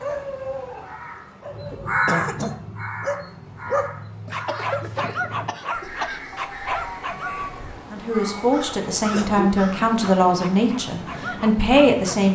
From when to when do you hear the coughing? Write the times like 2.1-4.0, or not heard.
1.7-2.5, 4.2-6.2, 9.0-9.5.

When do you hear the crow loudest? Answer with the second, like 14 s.
2 s.